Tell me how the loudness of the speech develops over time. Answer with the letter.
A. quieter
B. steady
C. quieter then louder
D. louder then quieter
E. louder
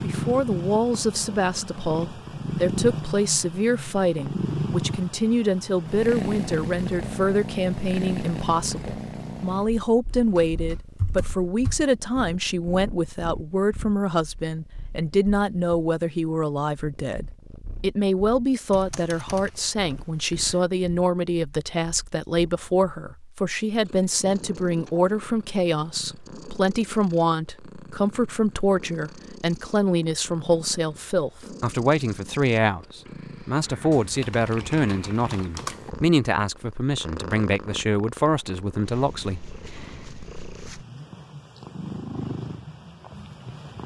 B.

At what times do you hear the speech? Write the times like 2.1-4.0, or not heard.
0.0-39.5.